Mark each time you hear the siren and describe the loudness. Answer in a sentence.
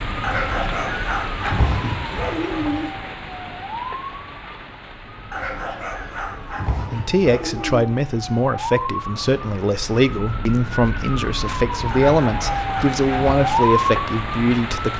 The siren can be heard from 0.0 to 14.9 s, getting louder.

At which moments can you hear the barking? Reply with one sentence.
You can hear the barking from 0.2 to 2.9 s, from 5.3 to 7.9 s and from 11.9 to 13.4 s.